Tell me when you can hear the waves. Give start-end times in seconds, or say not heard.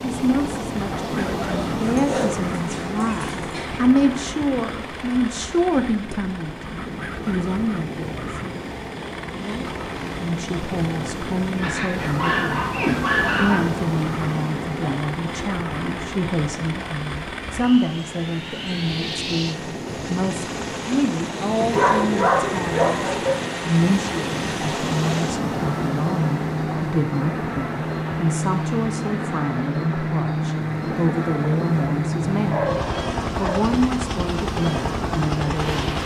0.0-36.0.